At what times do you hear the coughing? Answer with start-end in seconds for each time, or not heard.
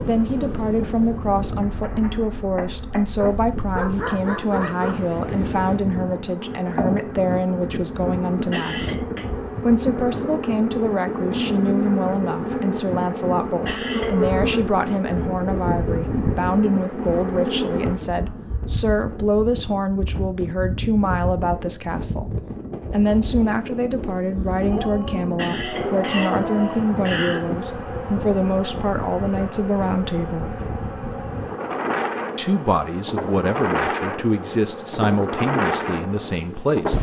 8.5-9.2, 13.7-14.1, 25.4-27.4.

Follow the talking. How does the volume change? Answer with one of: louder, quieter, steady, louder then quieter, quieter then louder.
steady.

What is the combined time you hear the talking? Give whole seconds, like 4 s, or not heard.
35 s.